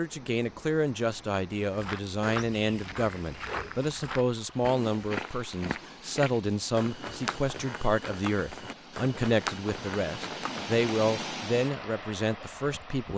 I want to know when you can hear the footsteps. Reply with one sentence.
You can hear the footsteps from 1.7 to 10.7 s.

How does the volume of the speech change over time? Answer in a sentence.
The volume of the speech stays about the same.